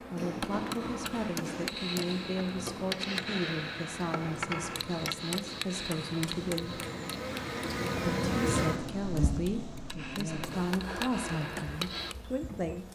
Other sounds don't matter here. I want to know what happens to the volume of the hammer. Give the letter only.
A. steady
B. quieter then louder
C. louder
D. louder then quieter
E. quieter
B.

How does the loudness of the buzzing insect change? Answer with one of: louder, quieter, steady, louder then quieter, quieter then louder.
louder then quieter.